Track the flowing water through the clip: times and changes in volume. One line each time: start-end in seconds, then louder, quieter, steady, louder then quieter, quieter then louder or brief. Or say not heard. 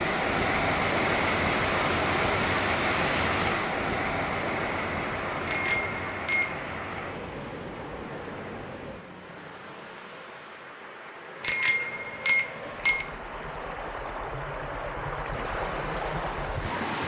0.0-17.0 quieter then louder.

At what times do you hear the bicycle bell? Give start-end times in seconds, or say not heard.
5.5-6.5, 11.4-13.1.